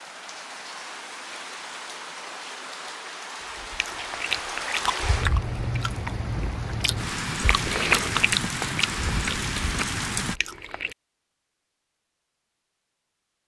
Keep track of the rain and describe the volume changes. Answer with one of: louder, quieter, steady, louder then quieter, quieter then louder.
louder.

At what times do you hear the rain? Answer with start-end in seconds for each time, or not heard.
0.0-10.4.